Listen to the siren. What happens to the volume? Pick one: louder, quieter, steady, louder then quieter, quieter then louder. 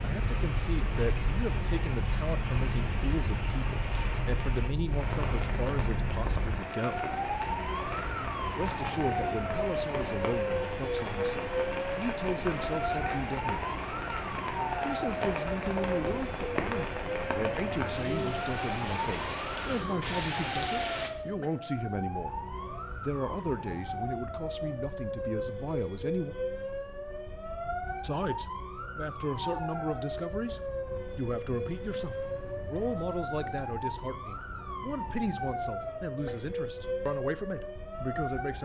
steady.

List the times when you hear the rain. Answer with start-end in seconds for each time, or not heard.
0.0-21.1.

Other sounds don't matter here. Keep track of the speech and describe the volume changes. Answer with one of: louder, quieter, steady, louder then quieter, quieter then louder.
steady.